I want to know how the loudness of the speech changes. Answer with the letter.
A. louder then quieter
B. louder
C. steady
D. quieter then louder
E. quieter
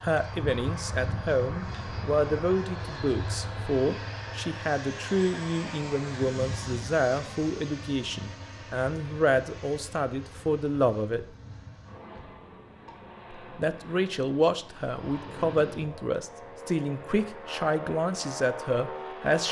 C.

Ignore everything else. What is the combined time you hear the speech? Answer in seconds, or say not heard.
17 s.